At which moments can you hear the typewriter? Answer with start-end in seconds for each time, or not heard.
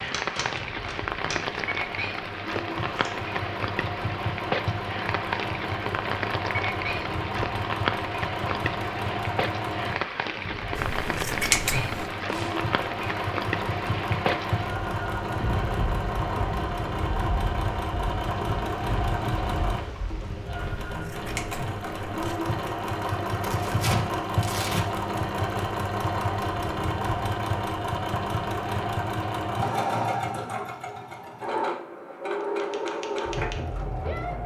0.0-1.6, 32.4-34.4.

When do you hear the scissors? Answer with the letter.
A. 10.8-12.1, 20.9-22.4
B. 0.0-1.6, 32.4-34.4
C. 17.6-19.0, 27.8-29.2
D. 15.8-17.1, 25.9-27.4
A.